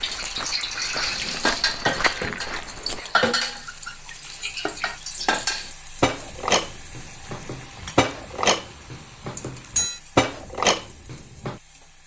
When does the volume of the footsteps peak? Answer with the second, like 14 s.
2 s.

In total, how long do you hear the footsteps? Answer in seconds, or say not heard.
3 s.